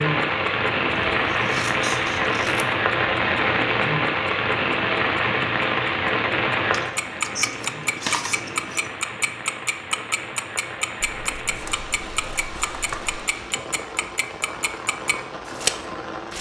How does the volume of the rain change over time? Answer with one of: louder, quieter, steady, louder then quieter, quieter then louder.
quieter.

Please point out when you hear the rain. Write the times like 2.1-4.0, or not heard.
0.0-16.3.